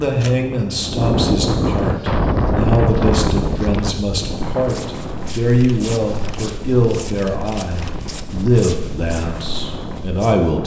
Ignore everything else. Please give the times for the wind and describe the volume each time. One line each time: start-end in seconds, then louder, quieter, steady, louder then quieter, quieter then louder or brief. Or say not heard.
0.0-10.6 quieter.